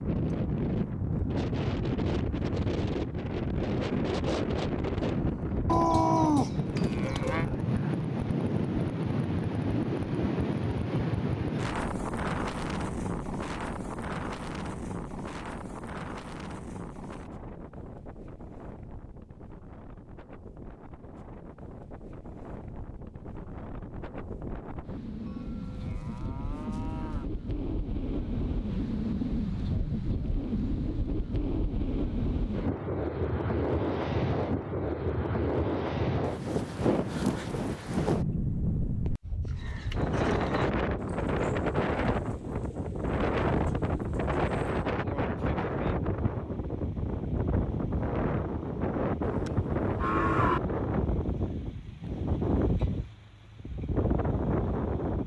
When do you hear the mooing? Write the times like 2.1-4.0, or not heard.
5.7-7.5, 25.2-27.2, 49.2-50.6.